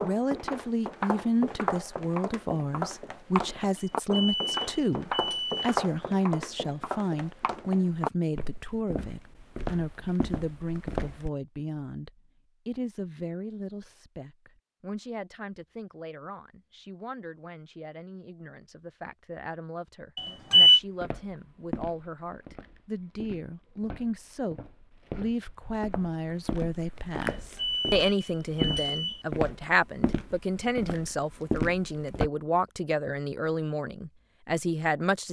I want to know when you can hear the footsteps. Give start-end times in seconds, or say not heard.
0.0-11.3, 20.6-32.3.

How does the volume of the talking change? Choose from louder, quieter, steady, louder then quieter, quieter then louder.
quieter then louder.